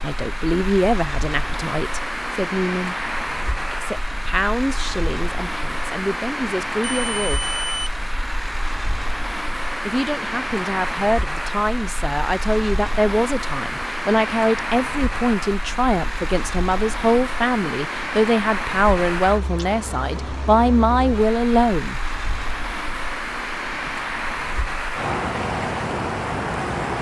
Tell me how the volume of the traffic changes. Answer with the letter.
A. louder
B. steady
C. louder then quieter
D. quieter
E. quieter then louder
B.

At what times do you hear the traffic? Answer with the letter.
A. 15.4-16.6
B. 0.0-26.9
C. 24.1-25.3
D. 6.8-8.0
B.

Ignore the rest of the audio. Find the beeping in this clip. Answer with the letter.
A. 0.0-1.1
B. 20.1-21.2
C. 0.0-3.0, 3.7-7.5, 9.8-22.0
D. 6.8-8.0
D.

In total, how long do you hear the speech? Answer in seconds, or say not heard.
19 s.